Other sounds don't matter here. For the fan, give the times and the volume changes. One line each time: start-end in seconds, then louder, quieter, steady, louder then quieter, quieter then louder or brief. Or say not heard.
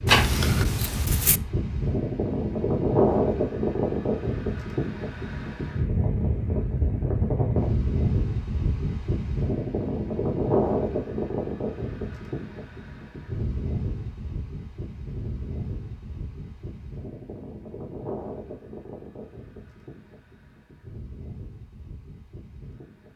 0.0-23.1 quieter.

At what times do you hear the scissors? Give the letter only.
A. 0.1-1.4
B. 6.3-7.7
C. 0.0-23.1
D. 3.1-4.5
A.